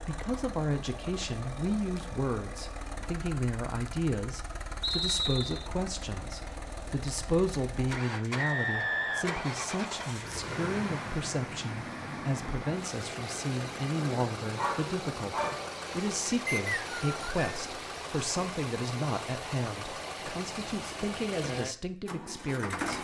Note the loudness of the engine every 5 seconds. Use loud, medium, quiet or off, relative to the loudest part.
medium, loud, loud, loud, loud.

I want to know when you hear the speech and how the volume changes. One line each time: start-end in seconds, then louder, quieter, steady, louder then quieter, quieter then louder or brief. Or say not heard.
0.1-23.0 steady.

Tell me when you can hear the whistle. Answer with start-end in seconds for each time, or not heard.
4.8-5.7, 8.3-10.2, 16.4-17.6.